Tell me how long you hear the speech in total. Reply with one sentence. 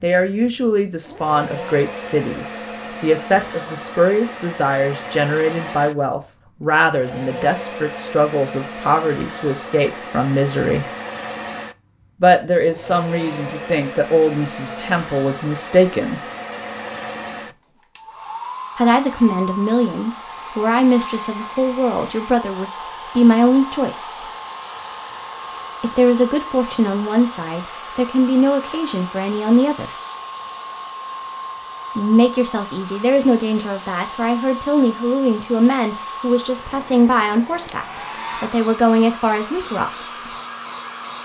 You can hear the speech for 33 seconds altogether.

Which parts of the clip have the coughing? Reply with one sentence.
The coughing can't be heard in this clip.